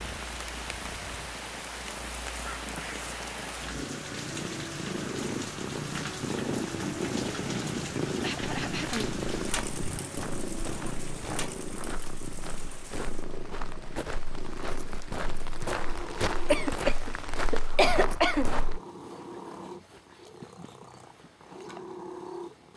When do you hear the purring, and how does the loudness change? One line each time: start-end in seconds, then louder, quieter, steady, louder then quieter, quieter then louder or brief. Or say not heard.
0.0-22.7 louder then quieter.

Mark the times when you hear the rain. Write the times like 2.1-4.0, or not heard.
0.0-17.8.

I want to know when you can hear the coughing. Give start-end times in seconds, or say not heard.
2.5-3.0, 8.1-9.2, 16.5-18.5.